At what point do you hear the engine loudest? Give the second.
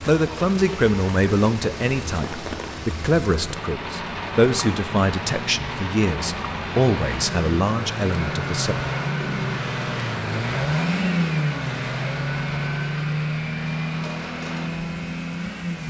11 s.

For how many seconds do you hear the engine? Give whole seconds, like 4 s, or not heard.
16 s.